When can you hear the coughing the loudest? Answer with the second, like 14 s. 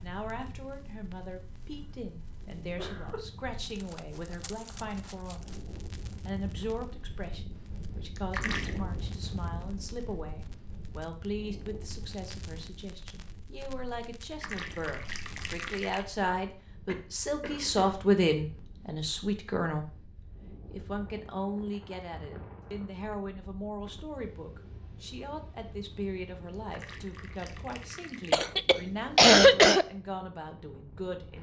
29 s.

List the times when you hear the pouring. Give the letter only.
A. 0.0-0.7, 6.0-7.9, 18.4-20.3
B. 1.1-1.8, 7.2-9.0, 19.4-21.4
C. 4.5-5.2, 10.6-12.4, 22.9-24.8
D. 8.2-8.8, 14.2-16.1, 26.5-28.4
D.